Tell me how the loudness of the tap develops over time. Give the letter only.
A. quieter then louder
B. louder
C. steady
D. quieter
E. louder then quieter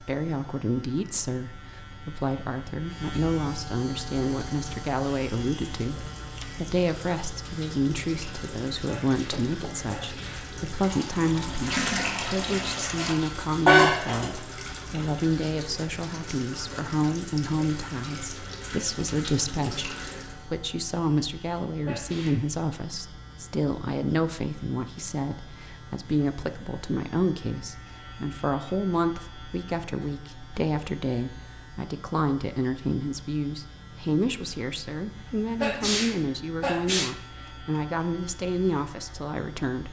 E.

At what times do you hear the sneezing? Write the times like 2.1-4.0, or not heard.
8.8-10.5, 21.9-22.4, 35.6-37.1.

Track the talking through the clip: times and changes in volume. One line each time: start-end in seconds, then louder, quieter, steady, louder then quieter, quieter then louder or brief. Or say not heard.
0.0-39.8 steady.